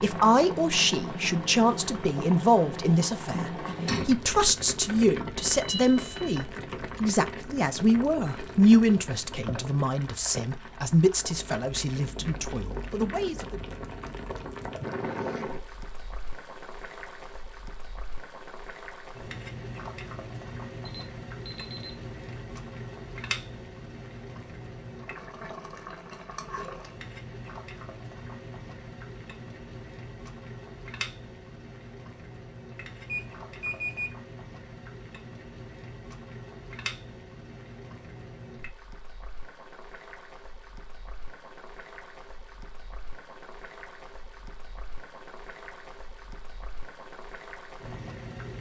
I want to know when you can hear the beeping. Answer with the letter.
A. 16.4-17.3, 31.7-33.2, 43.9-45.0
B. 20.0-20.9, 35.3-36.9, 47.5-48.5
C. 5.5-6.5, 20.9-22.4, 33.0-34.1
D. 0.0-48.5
C.